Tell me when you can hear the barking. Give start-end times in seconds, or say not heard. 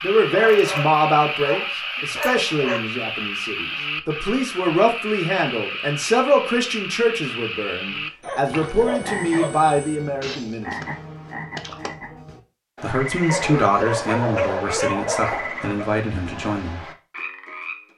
0.3-2.9, 8.2-9.7, 13.2-15.9.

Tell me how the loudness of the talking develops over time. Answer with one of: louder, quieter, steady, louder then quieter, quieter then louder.
quieter.